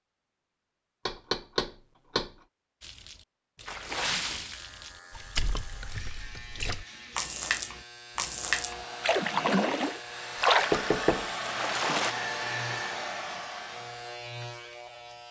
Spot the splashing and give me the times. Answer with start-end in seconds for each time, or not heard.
2.8-12.2.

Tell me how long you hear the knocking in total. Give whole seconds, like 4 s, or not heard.
2 s.